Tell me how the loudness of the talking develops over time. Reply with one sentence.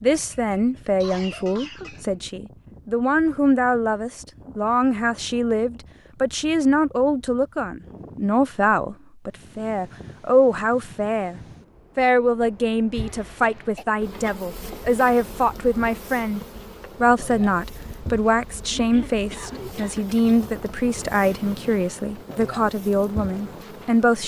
The volume of the talking stays about the same.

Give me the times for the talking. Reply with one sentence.
The talking can be heard from 0.0 to 24.2 s.